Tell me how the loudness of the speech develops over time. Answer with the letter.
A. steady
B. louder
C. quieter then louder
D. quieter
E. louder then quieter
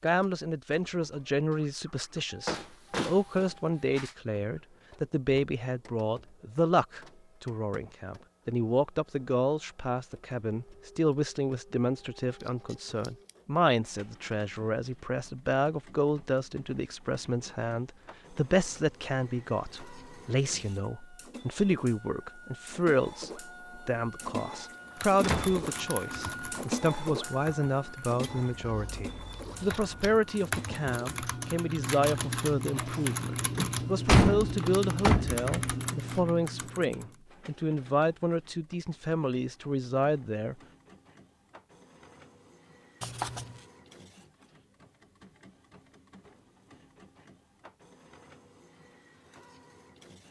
A.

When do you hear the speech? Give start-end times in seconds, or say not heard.
0.0-40.5.